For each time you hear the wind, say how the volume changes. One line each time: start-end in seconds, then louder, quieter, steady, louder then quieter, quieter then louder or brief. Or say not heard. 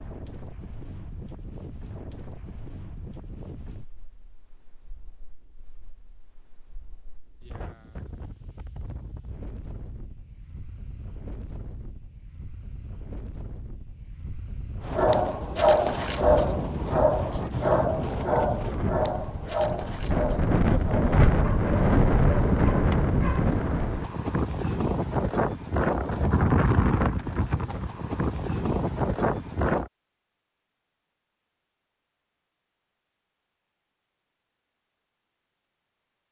0.0-29.9 louder.